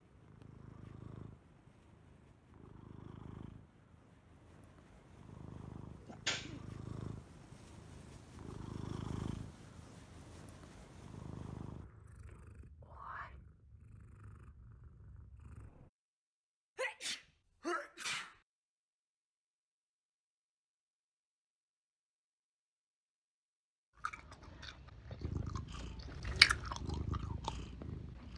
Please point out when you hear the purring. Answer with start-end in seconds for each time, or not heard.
0.0-15.9, 25.2-28.3.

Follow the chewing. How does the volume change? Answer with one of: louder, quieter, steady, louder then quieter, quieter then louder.
louder then quieter.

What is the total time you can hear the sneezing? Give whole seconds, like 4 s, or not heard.
2 s.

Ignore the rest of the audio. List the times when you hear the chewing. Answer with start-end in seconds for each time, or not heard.
24.0-28.3.